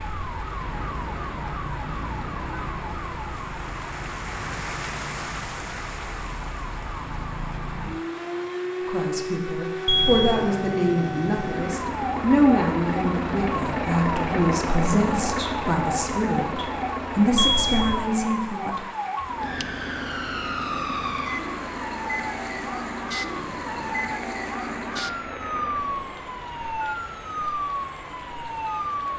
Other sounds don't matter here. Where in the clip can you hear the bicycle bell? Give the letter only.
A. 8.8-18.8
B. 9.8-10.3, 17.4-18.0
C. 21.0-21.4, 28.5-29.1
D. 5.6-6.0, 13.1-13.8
B.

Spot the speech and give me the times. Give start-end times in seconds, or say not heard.
8.8-18.8.